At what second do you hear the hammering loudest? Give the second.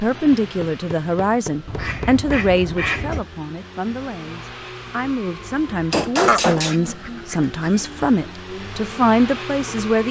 6 s.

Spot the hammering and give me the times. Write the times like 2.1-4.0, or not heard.
0.3-2.6, 5.9-7.0.